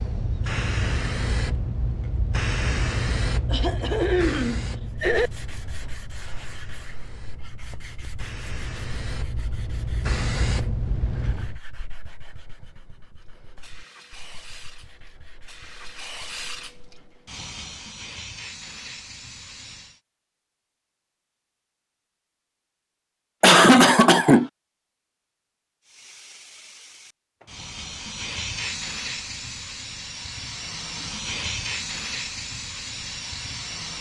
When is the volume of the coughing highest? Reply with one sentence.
The volume of the coughing peaks at 24 seconds.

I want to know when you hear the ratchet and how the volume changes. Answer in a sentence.
The ratchet can't be heard in this clip.